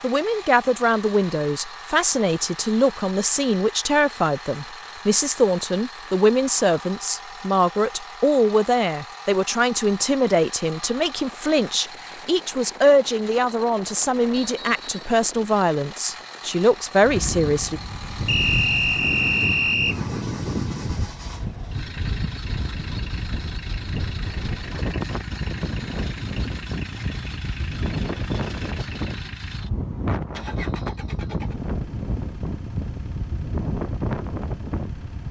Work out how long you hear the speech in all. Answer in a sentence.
The speech can be heard for 18 seconds in total.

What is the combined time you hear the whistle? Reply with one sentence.
The whistle can be heard for 2 seconds in total.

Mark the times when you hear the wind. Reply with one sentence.
You can hear the wind from 17.0 to 35.2 s.